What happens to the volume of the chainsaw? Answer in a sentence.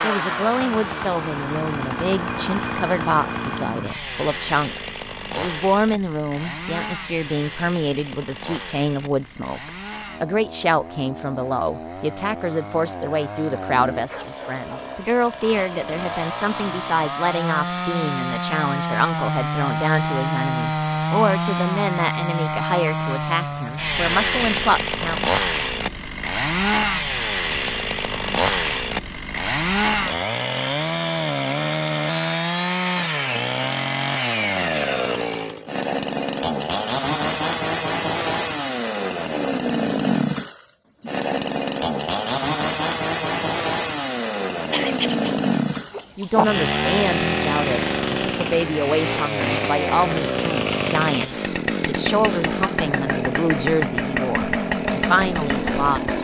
The volume of the chainsaw goes up.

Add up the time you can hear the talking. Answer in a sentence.
The talking can be heard for 35 seconds in total.